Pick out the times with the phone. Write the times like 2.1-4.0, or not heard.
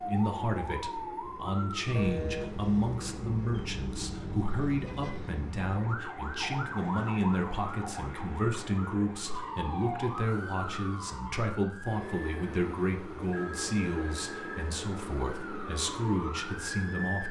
1.9-2.5, 13.3-14.7.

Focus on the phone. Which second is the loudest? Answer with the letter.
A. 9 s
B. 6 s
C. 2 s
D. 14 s
C.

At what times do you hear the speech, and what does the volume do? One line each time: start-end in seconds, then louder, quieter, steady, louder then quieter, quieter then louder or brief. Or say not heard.
0.0-17.2 steady.